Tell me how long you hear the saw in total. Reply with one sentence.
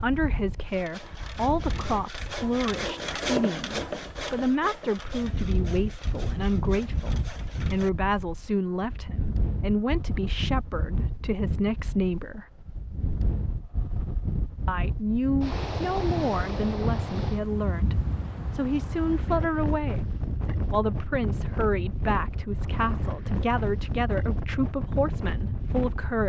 The saw can be heard for 7 seconds in total.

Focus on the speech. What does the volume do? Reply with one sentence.
The loudness of the speech stays about the same.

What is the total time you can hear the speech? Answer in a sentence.
The speech can be heard for 24 seconds in total.